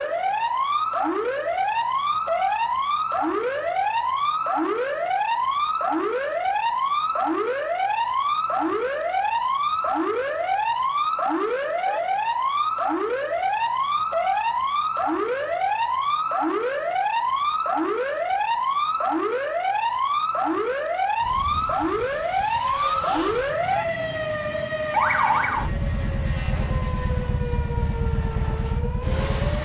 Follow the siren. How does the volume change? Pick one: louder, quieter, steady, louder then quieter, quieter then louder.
steady.